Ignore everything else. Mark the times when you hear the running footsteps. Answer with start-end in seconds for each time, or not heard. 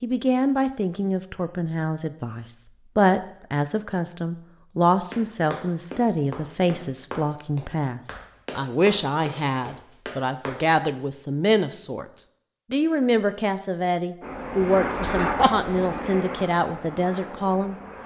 5.1-10.6.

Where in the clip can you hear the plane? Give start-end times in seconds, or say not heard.
14.2-18.0.